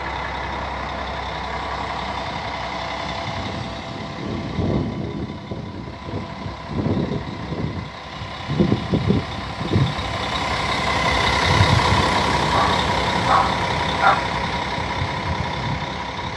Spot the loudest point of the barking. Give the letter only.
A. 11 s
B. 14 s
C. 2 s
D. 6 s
B.